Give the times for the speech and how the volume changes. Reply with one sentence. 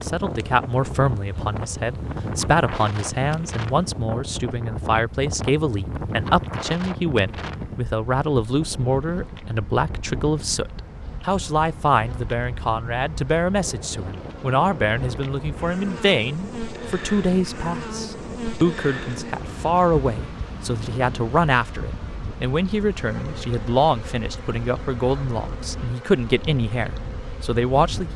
The speech can be heard from 0.0 to 28.1 s, at a steady volume.